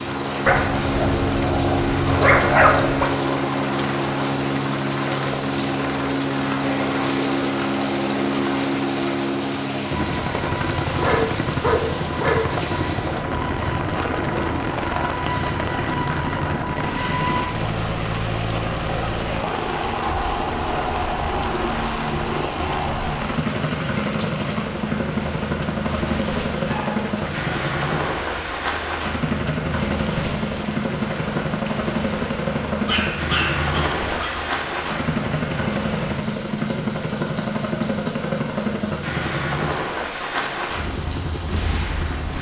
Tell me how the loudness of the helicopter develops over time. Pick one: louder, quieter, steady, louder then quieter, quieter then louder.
steady.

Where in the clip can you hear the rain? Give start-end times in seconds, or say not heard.
0.0-42.3.